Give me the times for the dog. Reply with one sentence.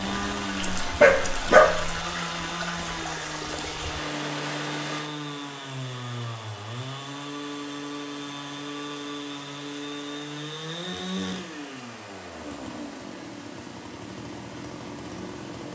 You can hear the dog from 0.6 to 2.0 s.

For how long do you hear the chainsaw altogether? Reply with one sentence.
The chainsaw can be heard for 16 seconds in total.